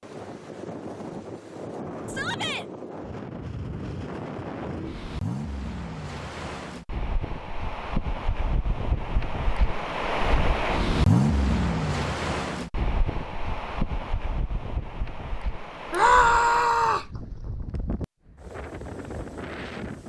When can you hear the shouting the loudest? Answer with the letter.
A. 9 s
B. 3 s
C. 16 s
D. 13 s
C.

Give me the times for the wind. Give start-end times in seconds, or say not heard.
0.0-20.0.